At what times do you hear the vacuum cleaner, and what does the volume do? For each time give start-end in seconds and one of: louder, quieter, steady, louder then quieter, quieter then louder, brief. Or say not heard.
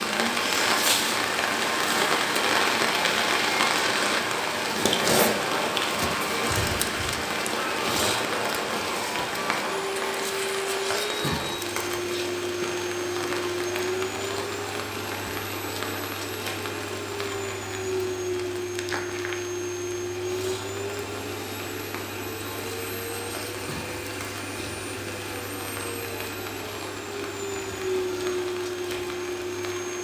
0.0-29.9 steady.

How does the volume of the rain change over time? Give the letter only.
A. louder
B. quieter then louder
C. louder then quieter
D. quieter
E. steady
D.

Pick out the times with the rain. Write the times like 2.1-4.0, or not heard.
0.0-29.9.